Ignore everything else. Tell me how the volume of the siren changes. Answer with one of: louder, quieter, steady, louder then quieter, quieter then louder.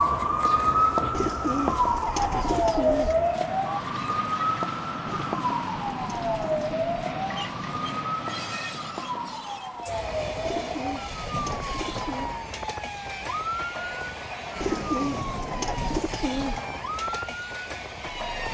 quieter.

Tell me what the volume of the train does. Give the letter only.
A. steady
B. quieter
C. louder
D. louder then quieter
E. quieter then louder
A.